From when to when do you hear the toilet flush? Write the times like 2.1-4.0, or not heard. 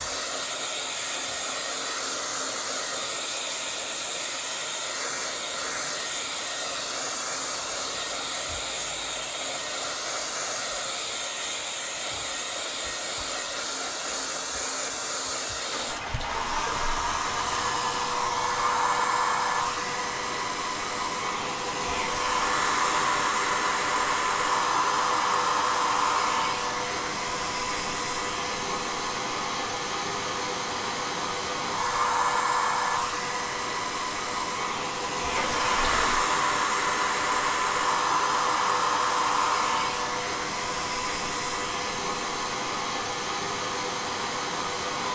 15.7-17.8, 35.4-36.2.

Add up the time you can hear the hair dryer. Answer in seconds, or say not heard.
45 s.